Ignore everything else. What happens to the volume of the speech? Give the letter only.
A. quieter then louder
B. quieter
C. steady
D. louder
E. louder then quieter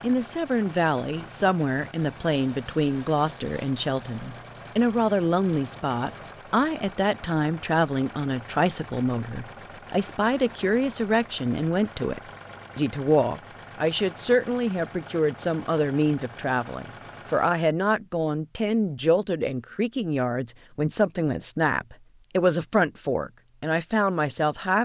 C.